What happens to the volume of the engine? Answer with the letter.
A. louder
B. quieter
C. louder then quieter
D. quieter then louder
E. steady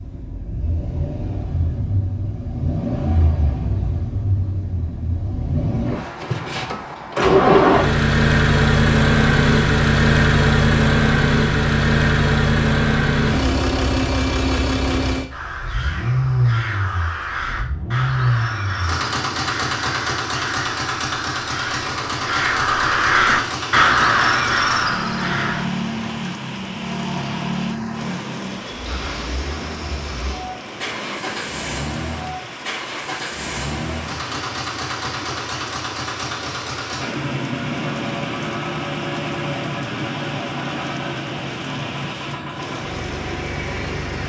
B.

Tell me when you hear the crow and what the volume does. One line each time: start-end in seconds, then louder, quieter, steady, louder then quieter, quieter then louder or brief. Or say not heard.
15.3-25.6 louder.